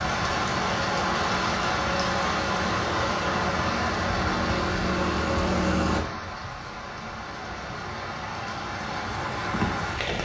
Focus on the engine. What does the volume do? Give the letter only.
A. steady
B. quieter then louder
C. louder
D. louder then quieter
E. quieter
C.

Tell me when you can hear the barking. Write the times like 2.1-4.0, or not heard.
not heard.